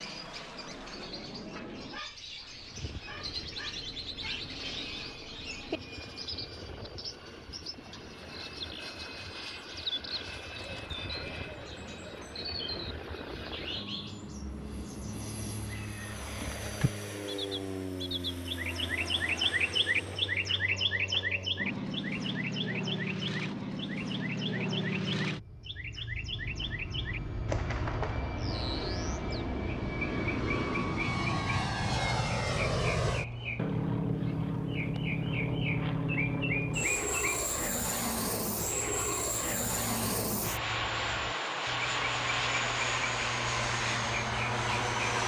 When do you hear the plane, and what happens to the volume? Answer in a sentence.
The plane can be heard from 0.0 to 45.2 s, getting louder.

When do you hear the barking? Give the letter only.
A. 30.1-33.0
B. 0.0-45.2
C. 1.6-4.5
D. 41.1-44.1
C.